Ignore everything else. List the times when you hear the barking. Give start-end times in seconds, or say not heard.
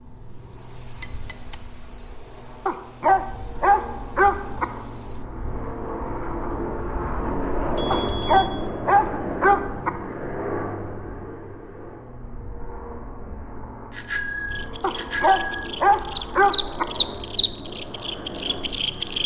2.6-4.7, 7.9-9.9, 14.8-16.9.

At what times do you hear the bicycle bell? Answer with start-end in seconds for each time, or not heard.
0.9-1.6, 7.8-8.7, 13.9-15.7.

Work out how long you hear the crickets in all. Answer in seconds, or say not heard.
19 s.